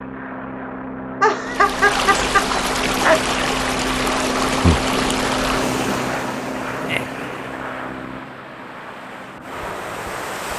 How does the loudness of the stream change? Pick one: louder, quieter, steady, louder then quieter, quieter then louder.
quieter.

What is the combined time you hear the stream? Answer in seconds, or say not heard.
9 s.